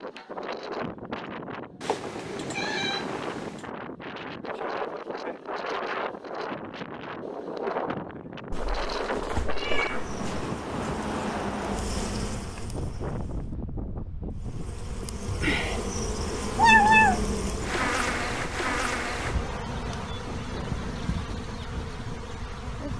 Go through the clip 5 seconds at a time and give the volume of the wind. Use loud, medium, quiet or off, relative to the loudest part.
loud, loud, loud, medium, medium.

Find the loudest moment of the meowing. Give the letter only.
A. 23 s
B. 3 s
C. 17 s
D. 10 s
C.